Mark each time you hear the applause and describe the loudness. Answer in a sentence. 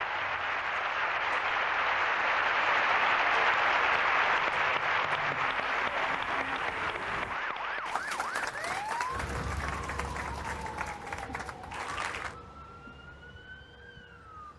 You can hear the applause from 0.0 to 12.3 s, getting quieter.